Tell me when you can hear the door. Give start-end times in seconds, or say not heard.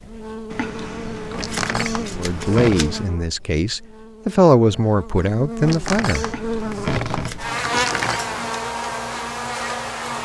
1.3-2.9, 5.6-8.2.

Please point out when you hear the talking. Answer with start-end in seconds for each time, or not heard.
2.1-6.2.